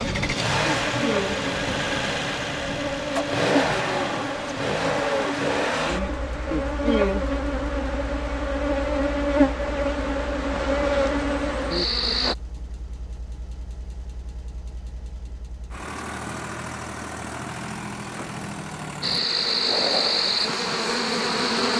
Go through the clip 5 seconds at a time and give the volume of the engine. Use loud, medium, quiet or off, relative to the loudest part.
loud, medium, quiet, medium, medium.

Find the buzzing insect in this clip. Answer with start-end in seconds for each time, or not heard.
0.0-12.3, 19.0-21.7.